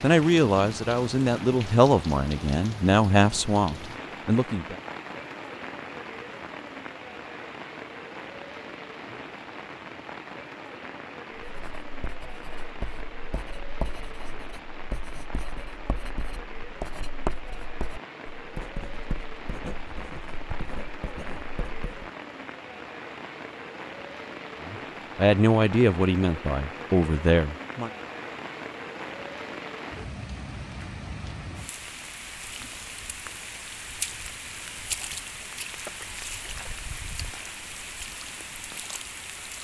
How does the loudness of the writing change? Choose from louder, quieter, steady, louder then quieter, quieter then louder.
louder then quieter.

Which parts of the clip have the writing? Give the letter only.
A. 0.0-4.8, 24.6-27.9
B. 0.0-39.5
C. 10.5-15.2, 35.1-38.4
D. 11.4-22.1
D.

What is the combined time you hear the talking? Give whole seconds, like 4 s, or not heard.
8 s.